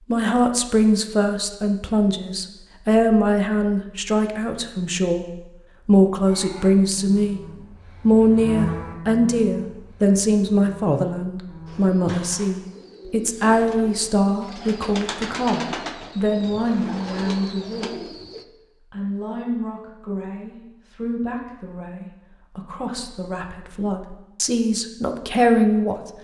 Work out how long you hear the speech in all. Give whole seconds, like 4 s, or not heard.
24 s.